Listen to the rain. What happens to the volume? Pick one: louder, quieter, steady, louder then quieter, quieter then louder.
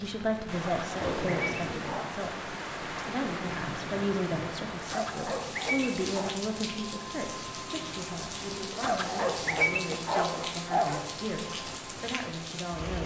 steady.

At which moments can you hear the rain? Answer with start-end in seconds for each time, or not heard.
0.0-13.0.